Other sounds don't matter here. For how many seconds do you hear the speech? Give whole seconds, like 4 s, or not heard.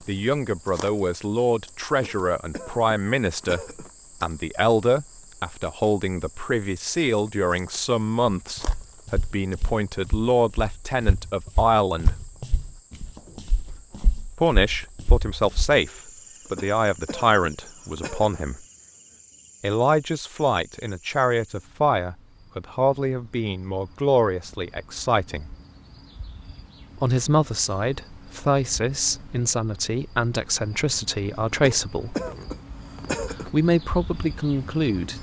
29 s.